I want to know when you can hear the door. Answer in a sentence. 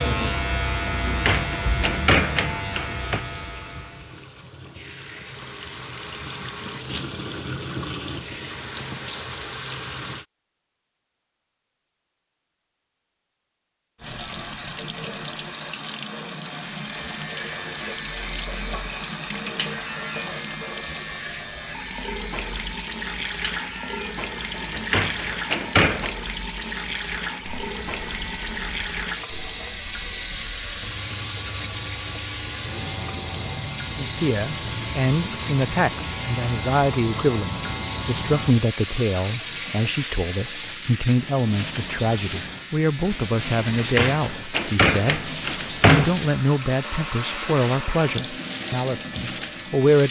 You can hear the door from 1.1 to 3.2 s, from 24.6 to 26.1 s and from 43.8 to 46.1 s.